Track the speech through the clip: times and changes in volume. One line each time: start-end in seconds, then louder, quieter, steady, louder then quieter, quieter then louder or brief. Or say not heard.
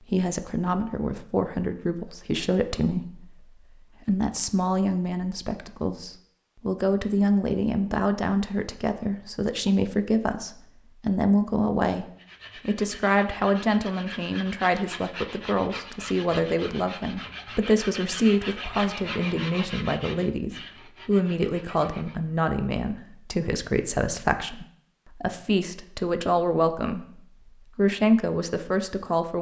0.1-29.3 steady.